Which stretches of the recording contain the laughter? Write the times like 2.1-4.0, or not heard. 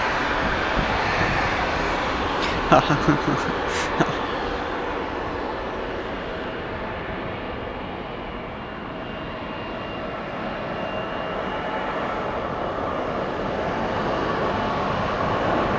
2.4-4.2.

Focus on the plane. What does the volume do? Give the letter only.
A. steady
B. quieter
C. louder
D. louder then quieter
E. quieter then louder
E.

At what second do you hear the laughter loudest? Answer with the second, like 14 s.
3 s.